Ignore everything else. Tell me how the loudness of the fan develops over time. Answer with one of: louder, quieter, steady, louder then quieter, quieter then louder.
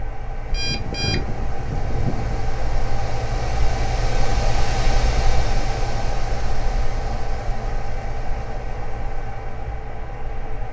louder then quieter.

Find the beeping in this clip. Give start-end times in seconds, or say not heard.
0.5-2.5.